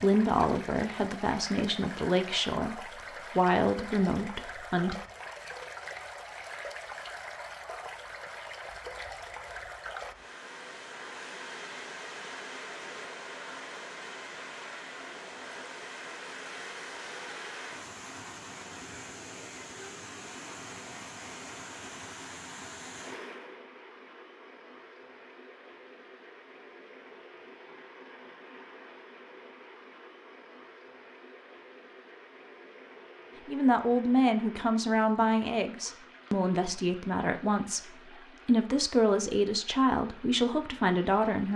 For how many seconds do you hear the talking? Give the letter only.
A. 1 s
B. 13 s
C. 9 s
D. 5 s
B.